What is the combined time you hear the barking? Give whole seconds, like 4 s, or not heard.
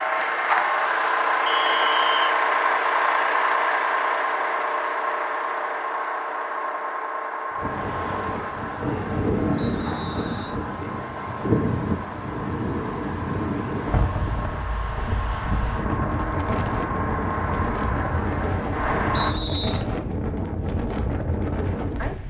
not heard.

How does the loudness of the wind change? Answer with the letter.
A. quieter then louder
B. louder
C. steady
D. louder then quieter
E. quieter
C.